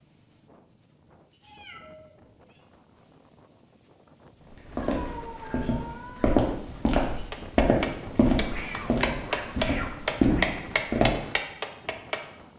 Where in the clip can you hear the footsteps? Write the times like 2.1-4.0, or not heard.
4.5-11.2.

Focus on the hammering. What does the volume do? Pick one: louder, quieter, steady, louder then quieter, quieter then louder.
louder then quieter.